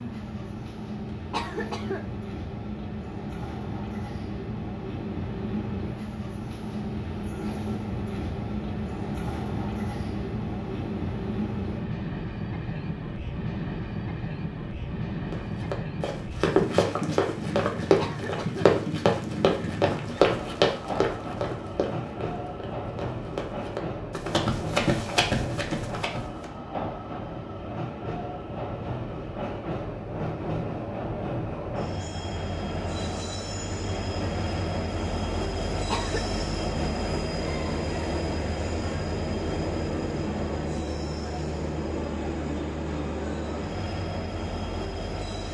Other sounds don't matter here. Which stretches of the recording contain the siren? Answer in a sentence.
You can't hear the siren here.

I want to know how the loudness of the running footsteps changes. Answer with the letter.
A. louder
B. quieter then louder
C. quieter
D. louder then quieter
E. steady
B.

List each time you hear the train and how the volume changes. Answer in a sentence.
You can hear the train from 0.0 to 45.4 s, at a steady volume.